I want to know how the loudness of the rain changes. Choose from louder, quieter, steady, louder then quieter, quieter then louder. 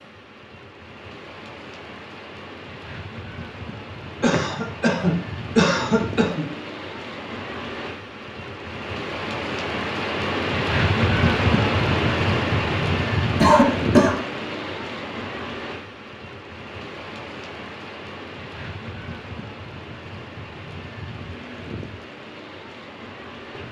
louder then quieter.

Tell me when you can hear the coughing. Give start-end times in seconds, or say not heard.
4.2-6.5, 13.4-14.2.